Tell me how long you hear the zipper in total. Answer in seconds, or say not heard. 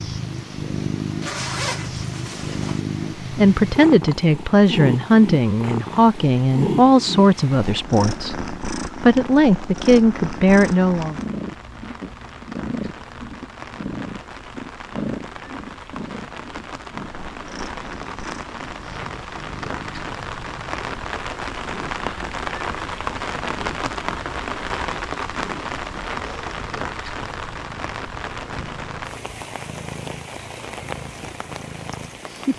2 s.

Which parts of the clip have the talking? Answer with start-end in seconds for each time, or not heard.
3.2-11.2.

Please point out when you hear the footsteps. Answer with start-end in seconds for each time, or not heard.
not heard.